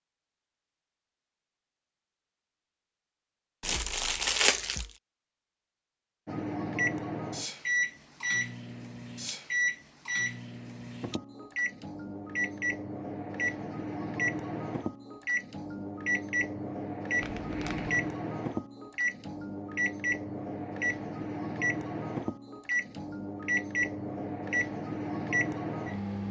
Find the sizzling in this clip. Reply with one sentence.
The sizzling can't be heard in this clip.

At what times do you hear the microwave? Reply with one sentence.
The microwave can be heard from 6.2 to 26.2 s.